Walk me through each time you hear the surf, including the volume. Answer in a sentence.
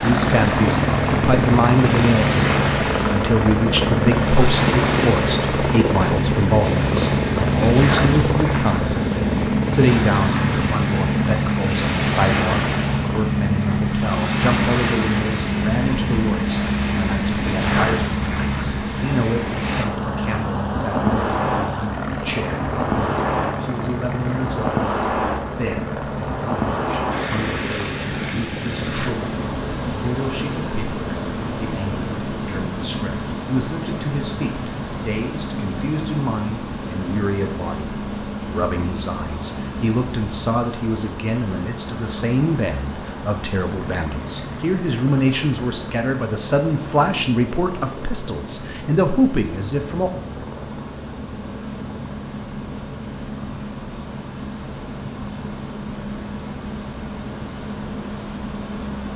The surf can be heard from 0.0 to 59.1 s, getting quieter.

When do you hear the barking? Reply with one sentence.
You can't hear the barking here.